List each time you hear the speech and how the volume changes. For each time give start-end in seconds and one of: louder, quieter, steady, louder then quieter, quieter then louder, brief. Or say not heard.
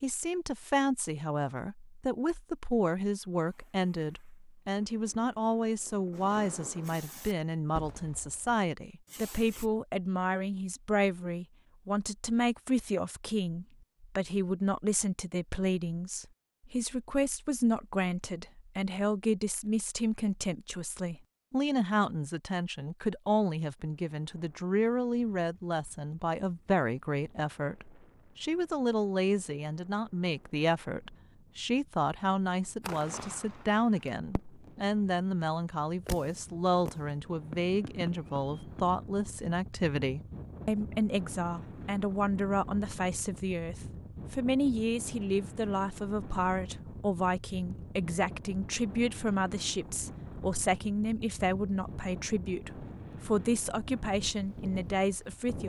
0.0-55.6 steady.